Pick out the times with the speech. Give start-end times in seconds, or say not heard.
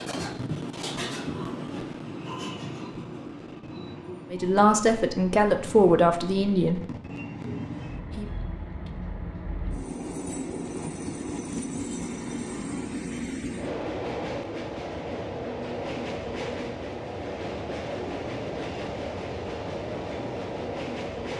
4.3-6.8.